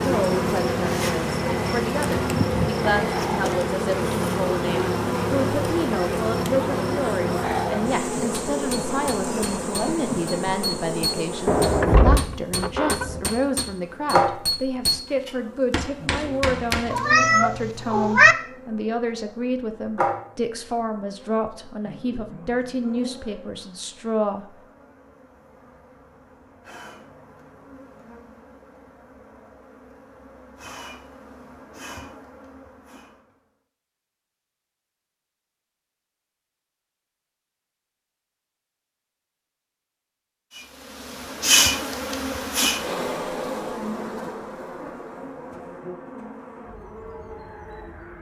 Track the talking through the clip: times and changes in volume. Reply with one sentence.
You can hear the talking from 0.0 to 24.4 s, at a steady volume.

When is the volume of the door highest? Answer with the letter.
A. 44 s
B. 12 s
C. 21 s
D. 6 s
B.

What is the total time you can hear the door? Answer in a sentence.
The door can be heard for 2 seconds in total.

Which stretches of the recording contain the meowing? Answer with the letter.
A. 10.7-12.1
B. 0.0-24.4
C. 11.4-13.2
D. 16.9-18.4
D.